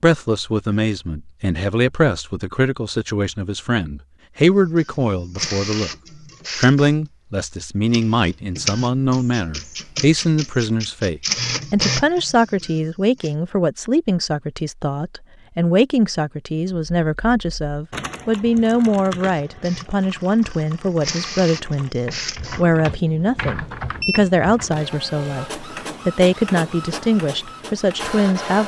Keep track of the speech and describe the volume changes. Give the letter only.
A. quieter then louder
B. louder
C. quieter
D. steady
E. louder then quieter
D.